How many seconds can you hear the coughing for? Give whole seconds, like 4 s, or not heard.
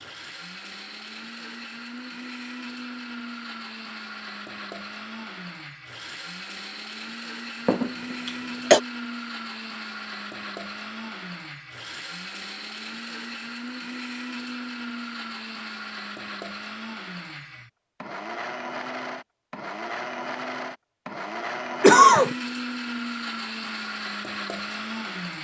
2 s.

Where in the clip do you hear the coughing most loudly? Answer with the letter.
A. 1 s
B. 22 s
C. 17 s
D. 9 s
B.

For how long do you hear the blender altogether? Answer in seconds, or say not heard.
25 s.